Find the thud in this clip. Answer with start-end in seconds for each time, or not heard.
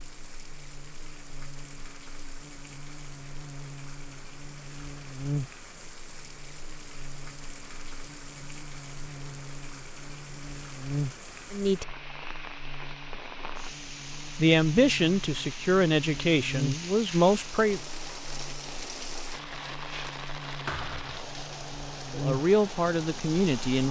20.6-21.2.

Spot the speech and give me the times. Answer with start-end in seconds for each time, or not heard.
11.5-11.9, 14.3-17.8, 22.1-23.8.